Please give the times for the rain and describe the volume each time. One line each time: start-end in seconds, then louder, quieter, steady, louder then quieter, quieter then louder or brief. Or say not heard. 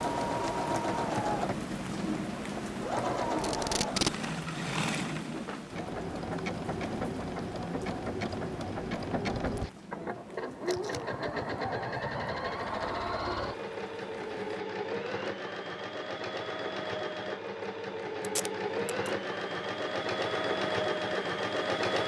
0.0-14.6 quieter.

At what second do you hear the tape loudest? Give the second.
4 s.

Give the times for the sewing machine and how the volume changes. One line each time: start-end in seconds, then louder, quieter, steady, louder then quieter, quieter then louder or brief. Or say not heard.
0.0-22.0 steady.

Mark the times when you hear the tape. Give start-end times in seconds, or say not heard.
3.4-4.2, 10.7-11.1, 18.2-19.1.